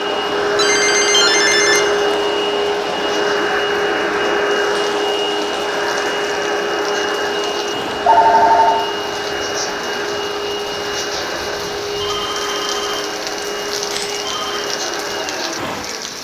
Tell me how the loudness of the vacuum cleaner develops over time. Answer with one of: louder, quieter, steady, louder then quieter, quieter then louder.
quieter.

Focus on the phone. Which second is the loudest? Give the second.
8 s.